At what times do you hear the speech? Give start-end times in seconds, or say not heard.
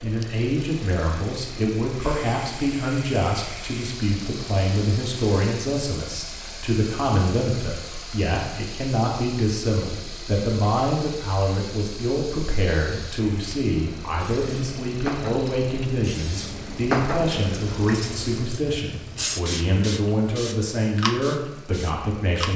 0.0-22.5.